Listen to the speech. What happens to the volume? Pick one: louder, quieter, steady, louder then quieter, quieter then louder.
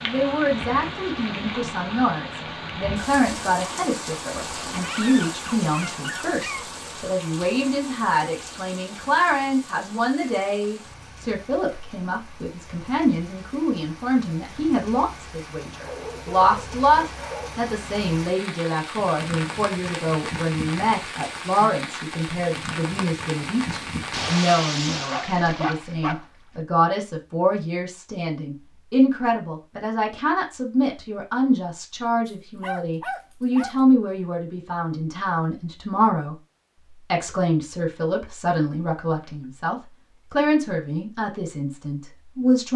steady.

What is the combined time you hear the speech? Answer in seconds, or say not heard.
42 s.